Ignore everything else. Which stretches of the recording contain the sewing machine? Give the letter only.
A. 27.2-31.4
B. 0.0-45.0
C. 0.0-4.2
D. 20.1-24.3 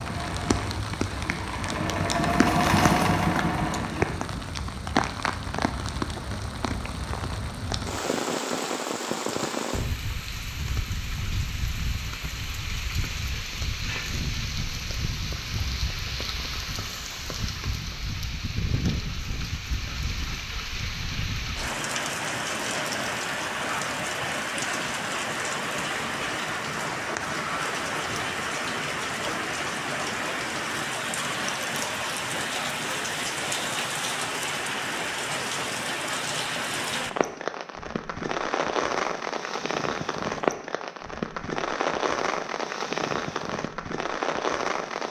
C.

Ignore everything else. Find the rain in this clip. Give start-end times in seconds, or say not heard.
0.0-45.0.